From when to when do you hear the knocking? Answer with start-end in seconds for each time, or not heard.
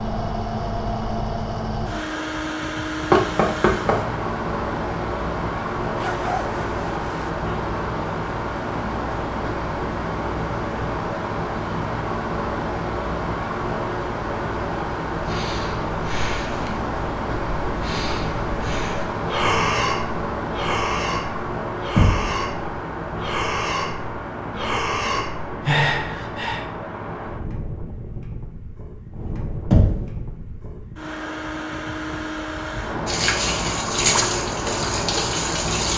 3.1-4.0, 21.9-22.4, 29.7-30.1.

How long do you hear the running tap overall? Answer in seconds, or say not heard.
3 s.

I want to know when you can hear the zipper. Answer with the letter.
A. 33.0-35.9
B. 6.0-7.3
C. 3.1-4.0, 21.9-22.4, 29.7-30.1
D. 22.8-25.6
B.